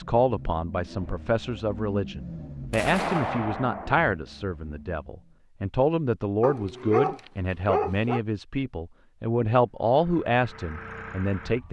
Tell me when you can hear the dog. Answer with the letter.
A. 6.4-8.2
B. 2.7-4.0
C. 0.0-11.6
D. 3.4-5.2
A.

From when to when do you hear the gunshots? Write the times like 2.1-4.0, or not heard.
2.7-4.0.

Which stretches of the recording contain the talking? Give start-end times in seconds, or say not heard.
0.0-11.6.